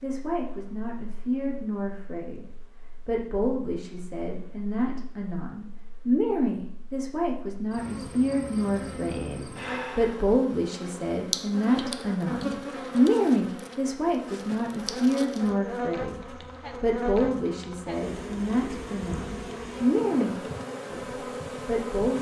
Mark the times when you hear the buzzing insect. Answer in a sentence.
You can hear the buzzing insect from 0.0 to 22.1 s.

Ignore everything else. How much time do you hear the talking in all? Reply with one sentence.
You can hear the talking for 22 seconds altogether.